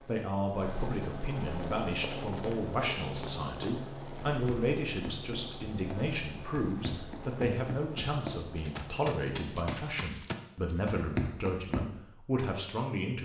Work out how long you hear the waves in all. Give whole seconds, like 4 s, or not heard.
not heard.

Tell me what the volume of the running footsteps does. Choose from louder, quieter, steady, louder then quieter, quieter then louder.
louder.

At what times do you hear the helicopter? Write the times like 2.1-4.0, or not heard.
0.0-9.7.